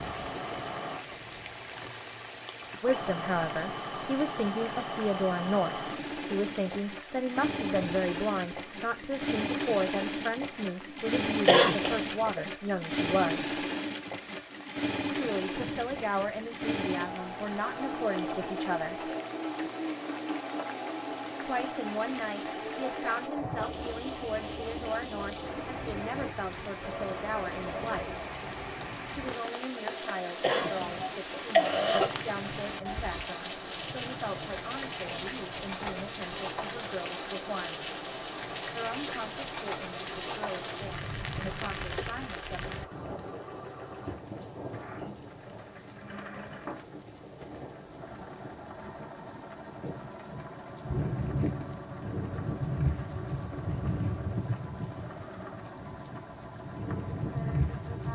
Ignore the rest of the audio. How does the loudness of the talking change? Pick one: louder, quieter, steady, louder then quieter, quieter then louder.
quieter.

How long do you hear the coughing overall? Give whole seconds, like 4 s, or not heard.
3 s.